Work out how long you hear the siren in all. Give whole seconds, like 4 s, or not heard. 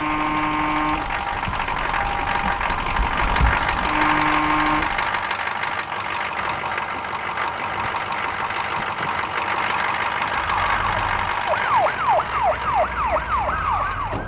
9 s.